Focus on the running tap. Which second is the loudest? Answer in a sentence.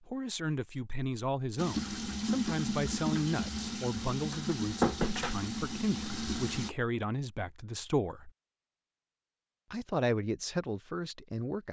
The loudest moment of the running tap is at 5 seconds.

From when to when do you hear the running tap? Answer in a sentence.
You can hear the running tap from 1.6 to 6.7 s.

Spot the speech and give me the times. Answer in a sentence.
The speech can be heard from 0.1 to 8.3 s and from 9.7 to 11.6 s.